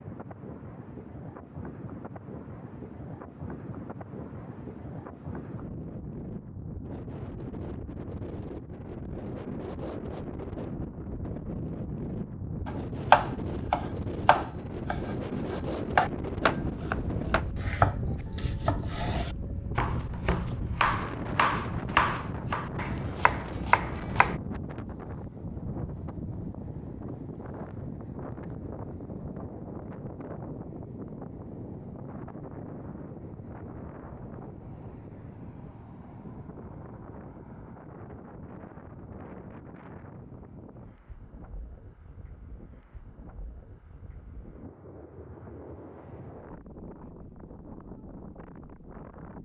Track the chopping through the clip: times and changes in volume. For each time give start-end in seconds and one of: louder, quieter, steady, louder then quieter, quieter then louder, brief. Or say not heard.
12.7-24.4 quieter.